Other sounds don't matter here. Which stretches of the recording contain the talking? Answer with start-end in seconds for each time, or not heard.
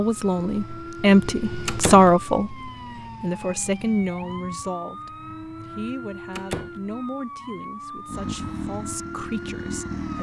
0.0-10.1.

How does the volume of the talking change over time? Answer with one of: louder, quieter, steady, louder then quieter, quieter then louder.
quieter.